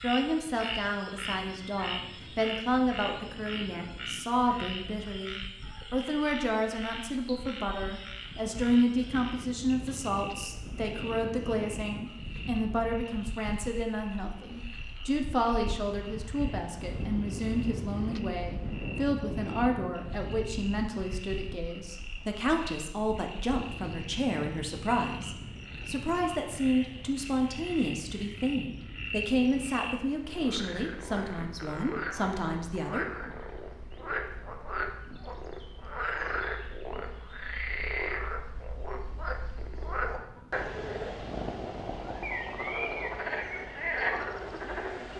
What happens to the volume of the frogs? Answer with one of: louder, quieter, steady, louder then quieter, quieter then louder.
quieter then louder.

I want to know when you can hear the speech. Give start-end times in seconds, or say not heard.
0.0-33.0.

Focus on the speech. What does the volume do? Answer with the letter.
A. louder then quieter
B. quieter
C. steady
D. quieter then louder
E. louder
C.